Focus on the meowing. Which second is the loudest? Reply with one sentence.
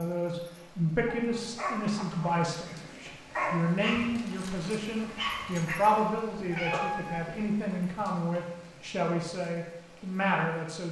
The loudest moment of the meowing is at 7 seconds.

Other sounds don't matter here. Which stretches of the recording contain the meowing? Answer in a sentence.
You can hear the meowing from 1.8 to 2.5 s and from 6.3 to 7.4 s.